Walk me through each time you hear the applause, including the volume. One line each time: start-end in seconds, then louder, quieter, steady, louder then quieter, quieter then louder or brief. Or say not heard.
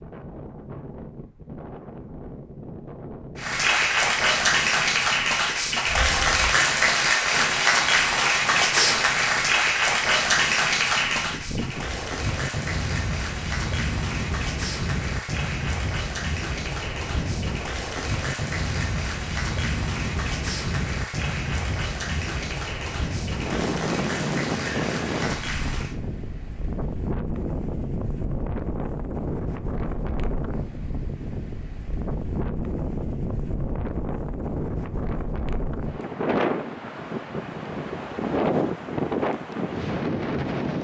3.4-25.9 quieter.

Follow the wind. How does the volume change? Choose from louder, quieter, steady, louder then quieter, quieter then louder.
louder.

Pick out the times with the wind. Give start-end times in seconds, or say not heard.
0.0-40.7.